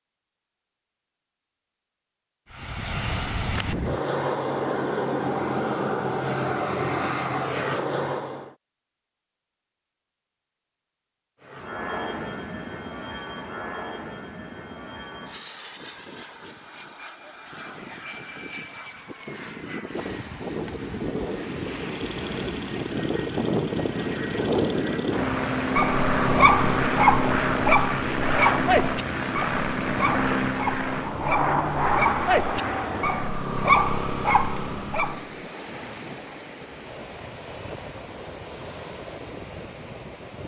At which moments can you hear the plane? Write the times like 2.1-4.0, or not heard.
2.5-8.6, 11.4-33.4.